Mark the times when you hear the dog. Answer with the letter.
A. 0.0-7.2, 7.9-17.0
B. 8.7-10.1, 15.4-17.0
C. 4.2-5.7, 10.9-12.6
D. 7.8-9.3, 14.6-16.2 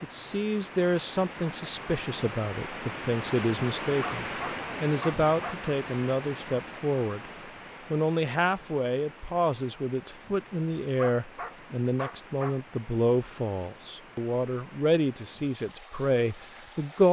C.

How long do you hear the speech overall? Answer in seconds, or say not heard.
16 s.